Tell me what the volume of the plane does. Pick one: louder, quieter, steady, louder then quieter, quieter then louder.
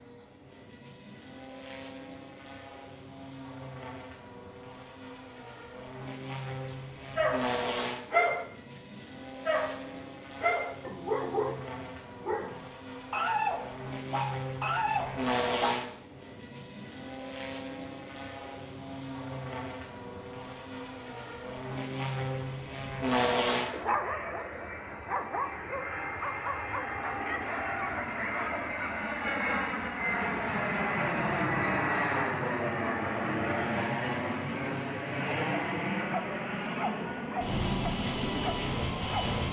louder.